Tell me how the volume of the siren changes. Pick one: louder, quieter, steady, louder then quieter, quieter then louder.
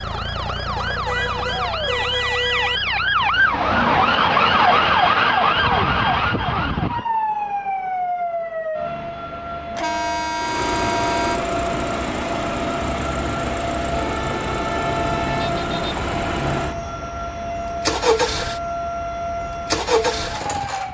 quieter.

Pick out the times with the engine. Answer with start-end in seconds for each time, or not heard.
0.0-3.6, 10.3-20.8.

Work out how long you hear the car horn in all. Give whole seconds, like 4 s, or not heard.
6 s.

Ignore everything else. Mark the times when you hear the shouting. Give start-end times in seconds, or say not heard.
1.4-2.0.